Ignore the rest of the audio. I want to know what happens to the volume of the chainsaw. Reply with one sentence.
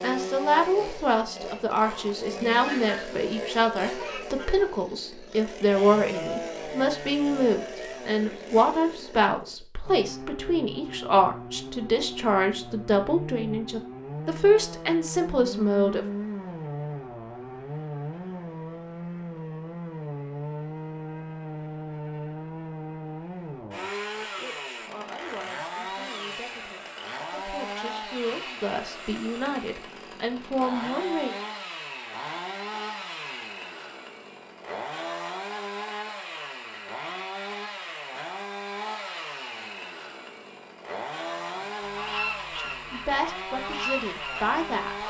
The volume of the chainsaw stays about the same.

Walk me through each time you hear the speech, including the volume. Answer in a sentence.
You can hear the speech from 0.0 to 16.1 s, at a steady volume; from 24.4 to 31.4 s, getting louder; and briefly from 42.5 to 45.0 s.